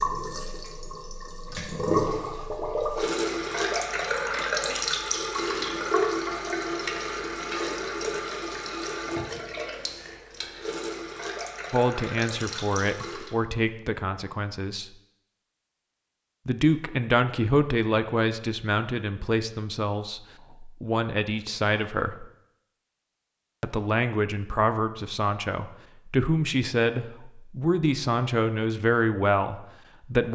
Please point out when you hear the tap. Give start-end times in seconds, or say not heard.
0.0-13.3.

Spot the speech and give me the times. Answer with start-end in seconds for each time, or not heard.
11.7-14.9, 16.4-22.2, 23.6-30.3.